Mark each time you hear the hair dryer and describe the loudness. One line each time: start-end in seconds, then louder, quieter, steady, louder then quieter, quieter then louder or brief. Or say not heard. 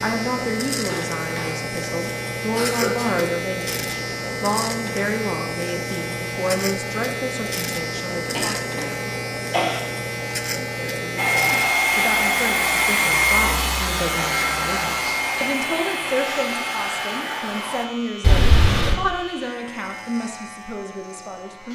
11.2-17.9 quieter.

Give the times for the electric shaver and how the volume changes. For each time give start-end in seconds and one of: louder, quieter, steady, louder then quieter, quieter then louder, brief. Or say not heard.
0.0-21.7 quieter.